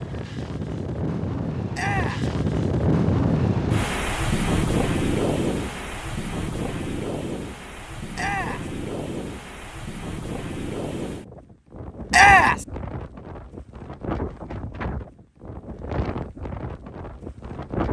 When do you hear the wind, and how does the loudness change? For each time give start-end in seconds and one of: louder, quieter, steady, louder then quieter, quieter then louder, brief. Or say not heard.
0.0-17.8 quieter.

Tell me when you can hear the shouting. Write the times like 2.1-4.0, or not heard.
1.7-2.2, 8.2-8.7, 12.1-12.7.